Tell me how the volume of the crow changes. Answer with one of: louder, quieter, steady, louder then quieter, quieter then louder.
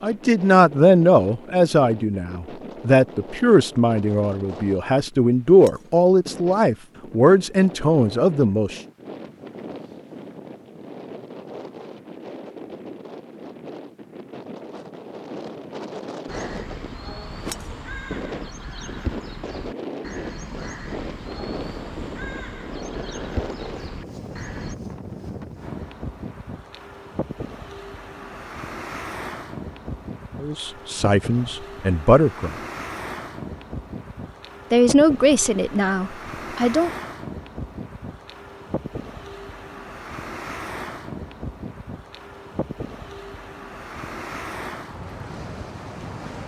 steady.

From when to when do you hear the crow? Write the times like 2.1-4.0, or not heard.
16.2-24.8.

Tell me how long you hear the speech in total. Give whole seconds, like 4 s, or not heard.
13 s.